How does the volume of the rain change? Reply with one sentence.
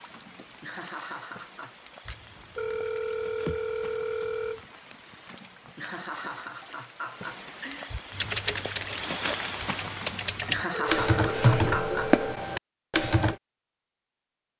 The loudness of the rain goes up.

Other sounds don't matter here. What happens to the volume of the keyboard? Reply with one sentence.
The volume of the keyboard goes up.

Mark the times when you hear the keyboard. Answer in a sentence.
You can hear the keyboard from 8.1 to 13.3 s.